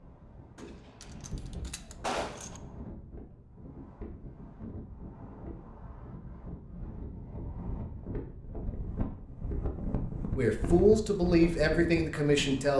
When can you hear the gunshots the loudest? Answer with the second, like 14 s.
2 s.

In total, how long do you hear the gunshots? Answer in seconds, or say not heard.
2 s.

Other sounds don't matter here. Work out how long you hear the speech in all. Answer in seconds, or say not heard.
2 s.